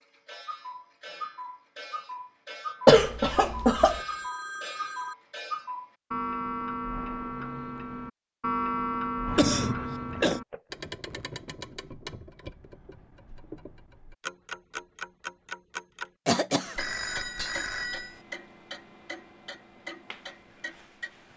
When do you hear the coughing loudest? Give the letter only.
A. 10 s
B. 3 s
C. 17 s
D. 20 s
B.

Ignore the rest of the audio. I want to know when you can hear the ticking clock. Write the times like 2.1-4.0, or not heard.
0.0-21.3.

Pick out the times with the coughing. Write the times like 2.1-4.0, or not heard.
2.9-4.0, 9.2-10.4, 16.2-16.8.